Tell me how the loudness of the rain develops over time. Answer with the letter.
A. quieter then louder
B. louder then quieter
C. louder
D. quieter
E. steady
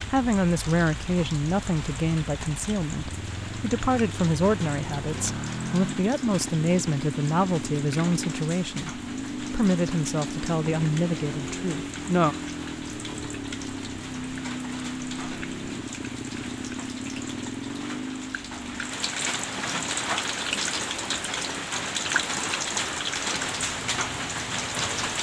C.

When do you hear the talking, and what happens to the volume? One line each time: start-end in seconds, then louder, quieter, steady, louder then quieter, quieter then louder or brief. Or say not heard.
0.0-12.3 steady.